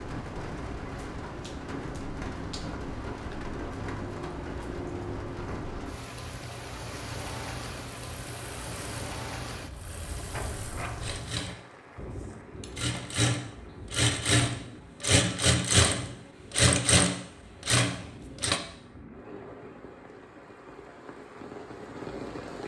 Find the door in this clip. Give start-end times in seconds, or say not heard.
10.3-11.2.